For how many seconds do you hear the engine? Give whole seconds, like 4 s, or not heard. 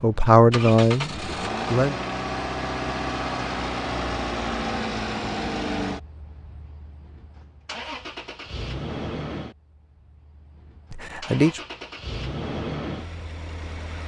14 s.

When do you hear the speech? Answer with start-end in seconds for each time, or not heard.
0.0-1.9, 10.9-11.6.